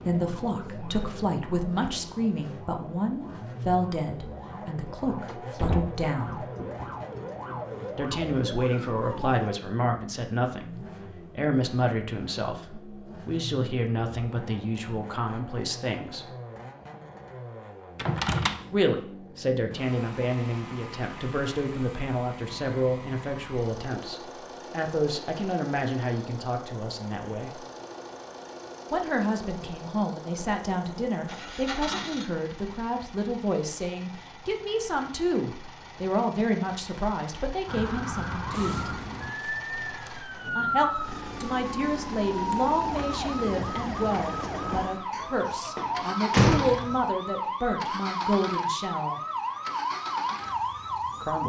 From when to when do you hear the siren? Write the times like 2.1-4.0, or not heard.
0.0-9.6, 37.6-51.4.